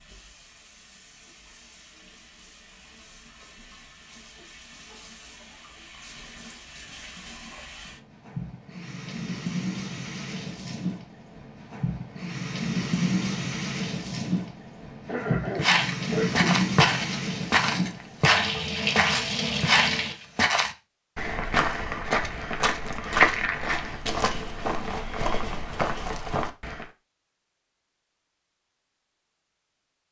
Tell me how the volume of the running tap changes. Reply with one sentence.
The loudness of the running tap goes up.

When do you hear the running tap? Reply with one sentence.
You can hear the running tap from 0.0 to 20.1 s.